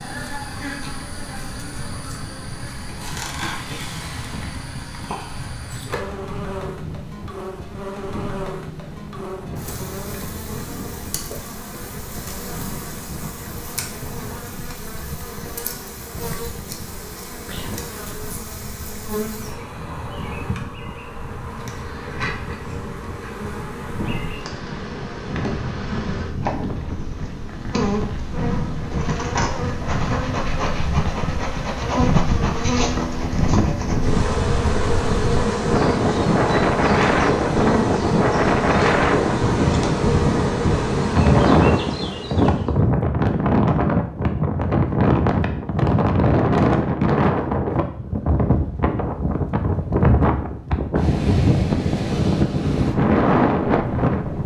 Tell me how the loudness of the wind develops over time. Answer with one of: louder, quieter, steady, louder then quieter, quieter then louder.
louder.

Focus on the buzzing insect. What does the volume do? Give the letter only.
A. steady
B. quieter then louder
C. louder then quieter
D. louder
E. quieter
D.